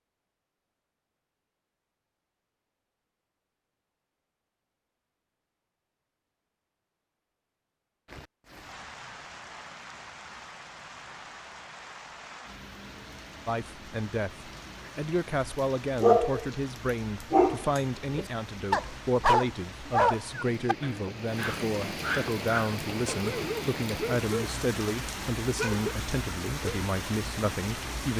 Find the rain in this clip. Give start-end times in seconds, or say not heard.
8.1-28.1.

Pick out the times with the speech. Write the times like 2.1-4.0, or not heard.
13.4-28.1.